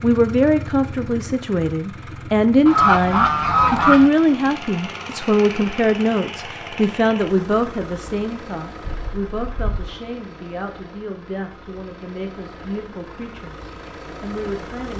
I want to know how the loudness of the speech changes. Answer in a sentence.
The volume of the speech goes down.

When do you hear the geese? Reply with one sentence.
You can hear the geese from 2.6 to 4.1 s and from 8.8 to 9.9 s.